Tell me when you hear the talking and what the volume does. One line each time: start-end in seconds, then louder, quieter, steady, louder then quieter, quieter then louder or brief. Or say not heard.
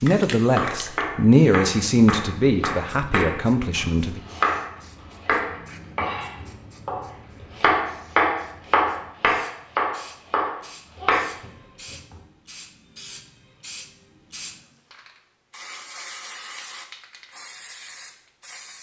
0.0-4.2 louder then quieter.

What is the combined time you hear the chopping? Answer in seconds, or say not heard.
12 s.